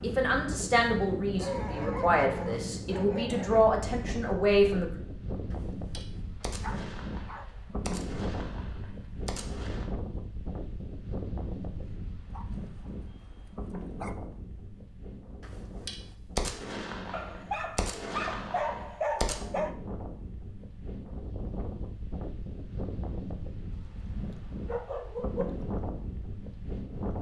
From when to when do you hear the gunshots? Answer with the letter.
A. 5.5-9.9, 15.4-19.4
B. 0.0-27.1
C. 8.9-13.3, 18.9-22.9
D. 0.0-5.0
A.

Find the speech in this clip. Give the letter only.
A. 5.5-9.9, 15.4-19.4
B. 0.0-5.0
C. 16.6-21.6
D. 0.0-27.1
B.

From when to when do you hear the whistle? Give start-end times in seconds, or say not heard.
not heard.